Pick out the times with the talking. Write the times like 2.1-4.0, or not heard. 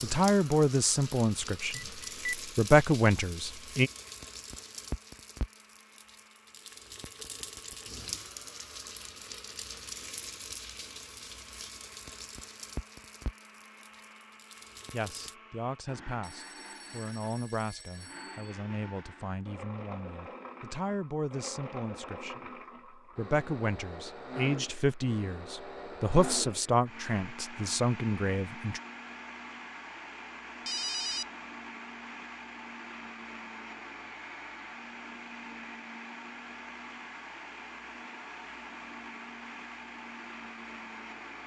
0.0-3.9, 14.9-28.8.